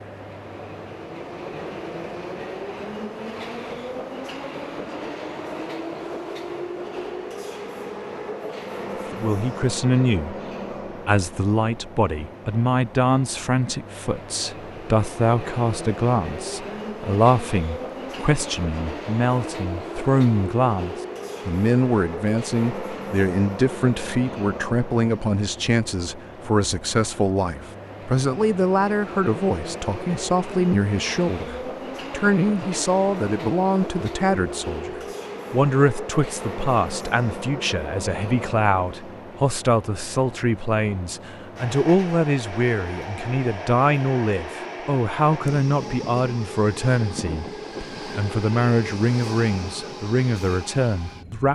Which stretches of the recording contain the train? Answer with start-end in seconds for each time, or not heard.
0.0-51.4.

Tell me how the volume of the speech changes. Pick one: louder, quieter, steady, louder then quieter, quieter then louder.
steady.